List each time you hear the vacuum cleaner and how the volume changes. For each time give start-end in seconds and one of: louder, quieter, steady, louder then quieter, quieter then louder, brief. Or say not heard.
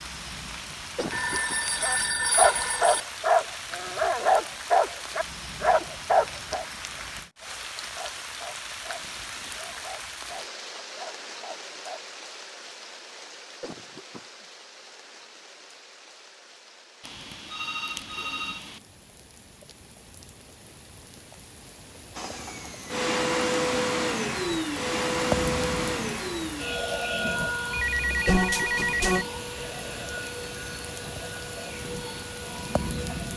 22.1-33.3 quieter.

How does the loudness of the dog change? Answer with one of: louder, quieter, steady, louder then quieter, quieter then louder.
quieter.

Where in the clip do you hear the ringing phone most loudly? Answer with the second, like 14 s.
28 s.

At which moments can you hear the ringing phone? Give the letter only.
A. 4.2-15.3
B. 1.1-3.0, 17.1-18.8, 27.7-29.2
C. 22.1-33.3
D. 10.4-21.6
B.